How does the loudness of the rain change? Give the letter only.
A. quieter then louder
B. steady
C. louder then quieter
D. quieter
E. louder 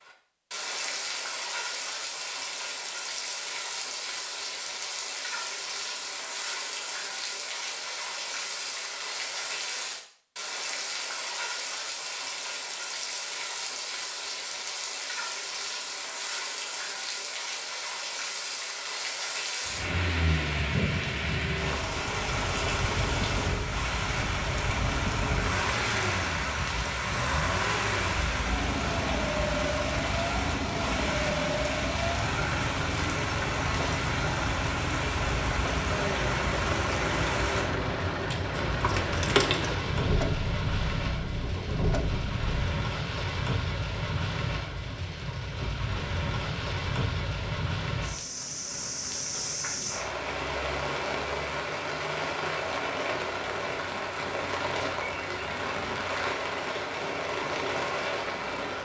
B.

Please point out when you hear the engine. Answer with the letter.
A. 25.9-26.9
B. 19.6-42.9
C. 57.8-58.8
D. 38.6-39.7
B.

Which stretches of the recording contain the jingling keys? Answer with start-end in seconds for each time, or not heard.
38.6-39.7.